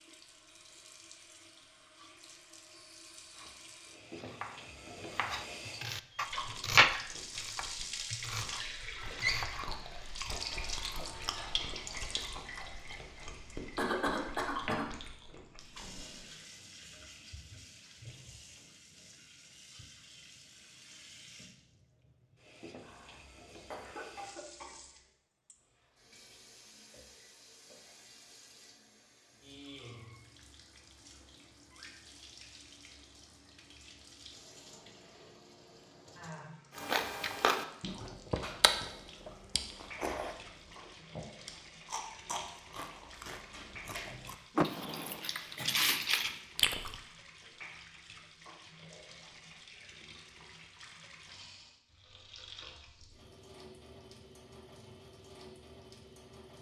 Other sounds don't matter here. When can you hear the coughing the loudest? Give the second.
14 s.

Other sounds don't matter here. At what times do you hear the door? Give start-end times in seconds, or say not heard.
10.3-11.7, 44.5-45.2.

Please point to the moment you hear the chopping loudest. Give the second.
7 s.